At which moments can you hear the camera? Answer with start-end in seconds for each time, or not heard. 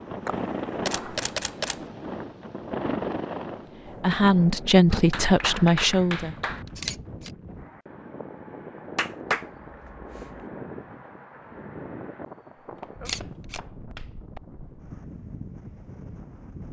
0.2-1.8, 6.7-7.3, 13.1-13.6.